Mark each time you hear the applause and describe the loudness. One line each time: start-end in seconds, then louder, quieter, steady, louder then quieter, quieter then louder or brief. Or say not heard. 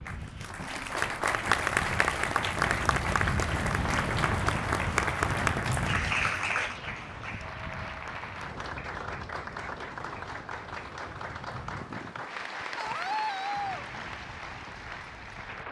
0.0-15.6 quieter.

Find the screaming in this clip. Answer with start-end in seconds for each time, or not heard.
12.8-13.8.